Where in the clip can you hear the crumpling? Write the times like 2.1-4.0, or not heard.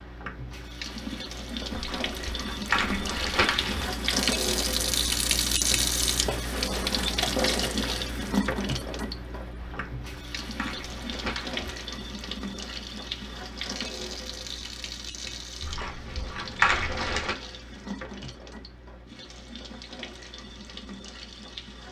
1.7-3.9, 9.6-11.8, 15.6-17.4.